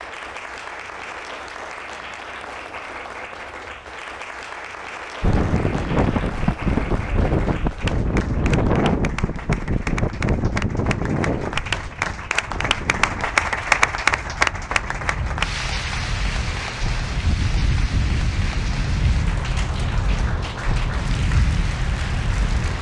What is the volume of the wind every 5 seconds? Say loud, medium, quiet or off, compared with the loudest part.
off, loud, medium, medium, medium.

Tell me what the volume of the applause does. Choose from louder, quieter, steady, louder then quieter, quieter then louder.
louder then quieter.